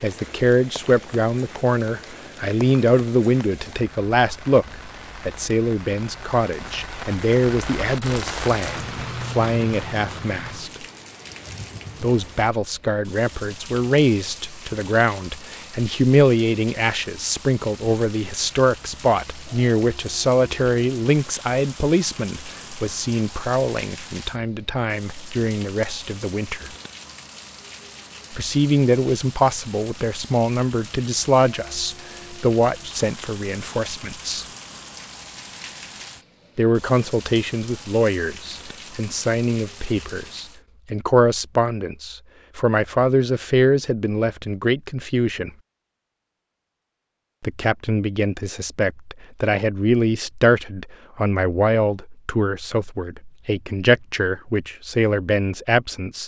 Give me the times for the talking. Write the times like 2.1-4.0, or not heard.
0.0-10.8, 12.0-26.7, 28.3-34.5, 36.5-45.5, 47.4-56.2.